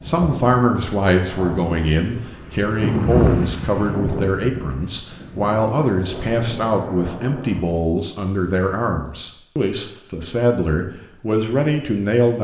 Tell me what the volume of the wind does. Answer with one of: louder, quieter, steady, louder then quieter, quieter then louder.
louder then quieter.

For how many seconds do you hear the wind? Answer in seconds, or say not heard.
8 s.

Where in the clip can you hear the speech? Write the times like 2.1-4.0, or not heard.
0.0-12.3.